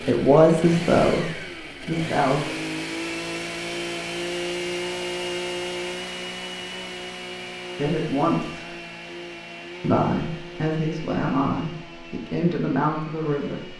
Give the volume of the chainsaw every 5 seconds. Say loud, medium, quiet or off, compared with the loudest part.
loud, loud, medium.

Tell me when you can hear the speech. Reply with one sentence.
The speech can be heard from 0.0 to 2.5 s, from 7.8 to 8.7 s and from 9.8 to 13.7 s.